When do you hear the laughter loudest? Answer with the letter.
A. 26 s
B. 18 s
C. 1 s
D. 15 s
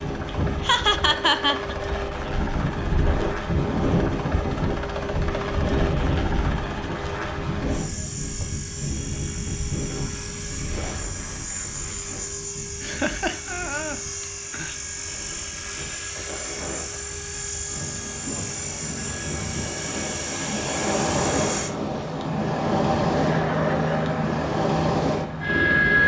C.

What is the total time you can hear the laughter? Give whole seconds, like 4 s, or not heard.
4 s.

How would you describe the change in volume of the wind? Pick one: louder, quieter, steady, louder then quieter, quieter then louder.
quieter then louder.